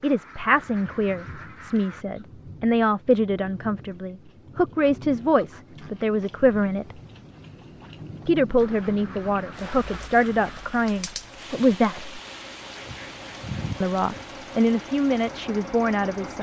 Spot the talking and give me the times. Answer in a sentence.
The talking can be heard from 0.0 to 7.0 s, from 8.2 to 12.2 s and from 13.8 to 16.3 s.